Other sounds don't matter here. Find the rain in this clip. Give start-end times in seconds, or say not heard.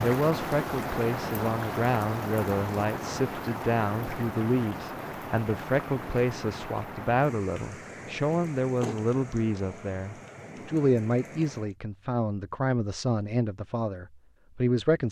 0.0-11.8.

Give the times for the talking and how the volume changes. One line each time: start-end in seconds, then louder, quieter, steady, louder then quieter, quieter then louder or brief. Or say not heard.
0.0-15.0 steady.